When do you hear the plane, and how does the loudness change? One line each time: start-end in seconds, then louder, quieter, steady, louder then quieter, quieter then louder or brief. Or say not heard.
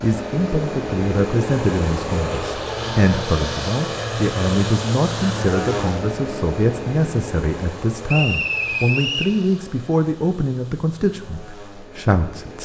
0.0-12.6 quieter.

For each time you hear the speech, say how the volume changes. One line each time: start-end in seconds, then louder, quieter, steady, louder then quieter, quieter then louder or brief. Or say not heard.
0.0-12.6 steady.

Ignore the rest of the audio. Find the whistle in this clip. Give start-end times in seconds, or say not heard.
8.1-9.3.